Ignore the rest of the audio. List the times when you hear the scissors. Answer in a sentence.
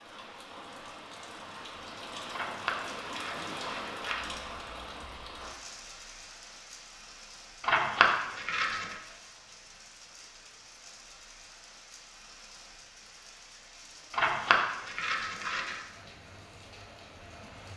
You can hear the scissors from 2.3 to 4.3 s, from 7.6 to 8.9 s and from 14.1 to 15.8 s.